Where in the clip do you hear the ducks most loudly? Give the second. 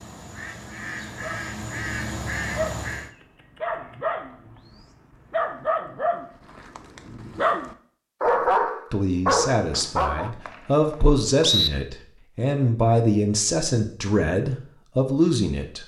2 s.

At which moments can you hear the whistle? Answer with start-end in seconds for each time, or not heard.
9.7-11.7.